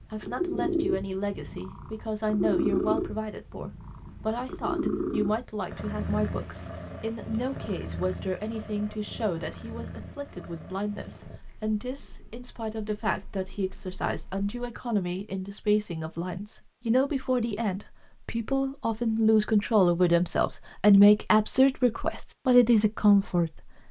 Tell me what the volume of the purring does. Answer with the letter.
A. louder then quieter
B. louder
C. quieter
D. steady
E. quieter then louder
C.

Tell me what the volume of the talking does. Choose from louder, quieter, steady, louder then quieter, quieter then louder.
louder.